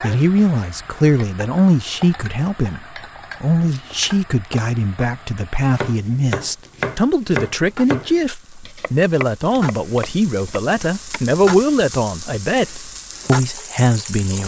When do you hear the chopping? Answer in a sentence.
You can hear the chopping from 5.8 to 11.4 s.